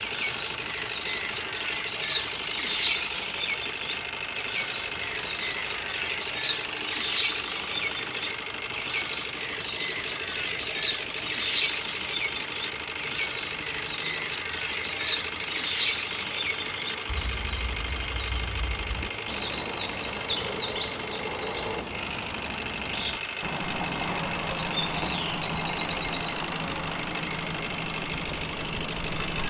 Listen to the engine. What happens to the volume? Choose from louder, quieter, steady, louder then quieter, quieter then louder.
steady.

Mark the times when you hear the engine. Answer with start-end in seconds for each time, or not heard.
0.0-29.4.